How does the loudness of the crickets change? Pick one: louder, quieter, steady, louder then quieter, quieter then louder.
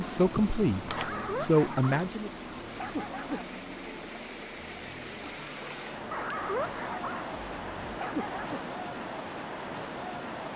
quieter.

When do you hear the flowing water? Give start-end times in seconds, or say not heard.
0.0-10.5.